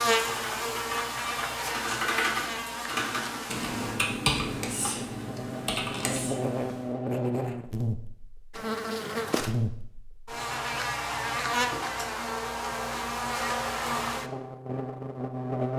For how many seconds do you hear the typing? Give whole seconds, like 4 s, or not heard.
7 s.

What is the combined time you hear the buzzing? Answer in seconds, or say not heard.
16 s.